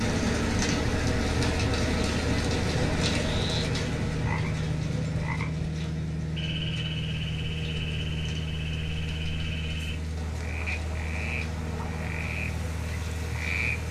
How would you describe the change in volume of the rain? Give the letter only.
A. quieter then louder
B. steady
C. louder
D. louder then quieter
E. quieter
E.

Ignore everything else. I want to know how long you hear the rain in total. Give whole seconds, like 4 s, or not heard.
14 s.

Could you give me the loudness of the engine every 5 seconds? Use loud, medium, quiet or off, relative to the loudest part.
loud, loud, medium.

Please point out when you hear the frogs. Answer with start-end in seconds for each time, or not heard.
3.2-13.8.